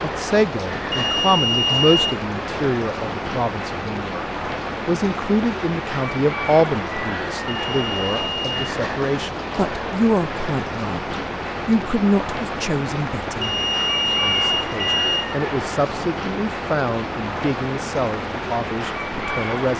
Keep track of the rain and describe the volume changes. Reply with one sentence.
The volume of the rain stays about the same.